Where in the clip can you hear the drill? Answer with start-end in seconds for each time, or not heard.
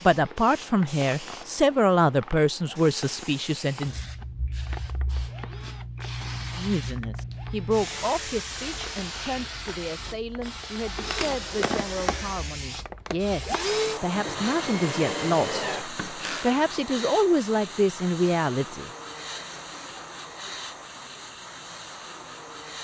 0.1-16.6.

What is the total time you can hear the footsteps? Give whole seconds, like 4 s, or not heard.
not heard.